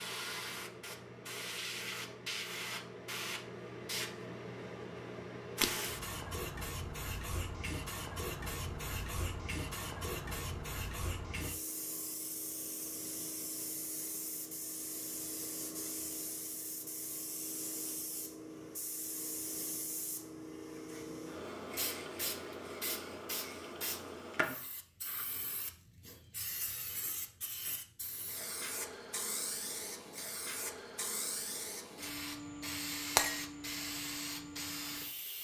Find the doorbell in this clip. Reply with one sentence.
The doorbell can't be heard in this clip.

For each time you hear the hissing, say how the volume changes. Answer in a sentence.
You can hear the hissing from 0.0 to 35.3 s, at a steady volume.